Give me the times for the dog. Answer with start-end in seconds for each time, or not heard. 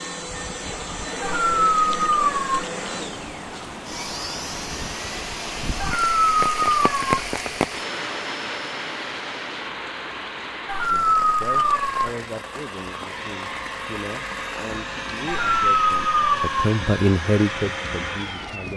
1.2-2.6, 5.8-7.2, 10.7-12.1, 15.2-16.7.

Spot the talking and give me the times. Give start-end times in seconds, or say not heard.
10.9-18.7.